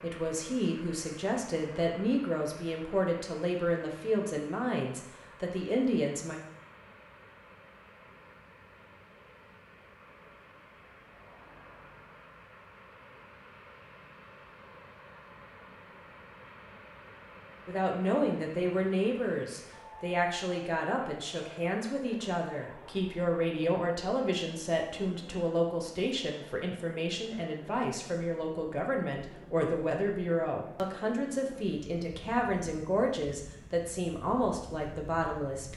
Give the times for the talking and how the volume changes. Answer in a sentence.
The talking can be heard from 0.0 to 6.4 s, at a steady volume; and from 17.6 to 35.7 s, at a steady volume.